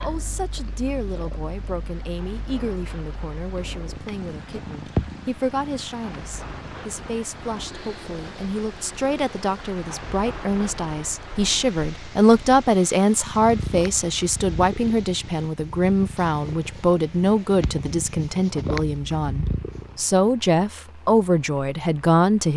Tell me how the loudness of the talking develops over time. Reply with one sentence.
The loudness of the talking goes up.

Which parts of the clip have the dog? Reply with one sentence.
The dog can't be heard in this clip.